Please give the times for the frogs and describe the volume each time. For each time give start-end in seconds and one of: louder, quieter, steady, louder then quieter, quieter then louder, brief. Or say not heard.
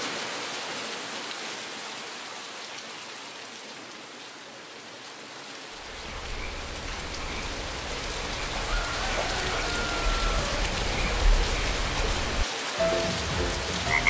5.8-14.0 louder.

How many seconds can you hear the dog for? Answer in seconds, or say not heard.
not heard.